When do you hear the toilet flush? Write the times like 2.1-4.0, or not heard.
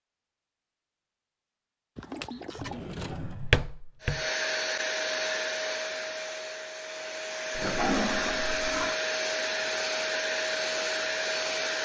1.9-3.0, 7.5-8.9.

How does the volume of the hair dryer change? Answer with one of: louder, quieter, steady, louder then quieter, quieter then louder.
quieter then louder.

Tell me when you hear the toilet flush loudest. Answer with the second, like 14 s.
8 s.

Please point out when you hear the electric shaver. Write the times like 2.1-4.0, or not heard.
not heard.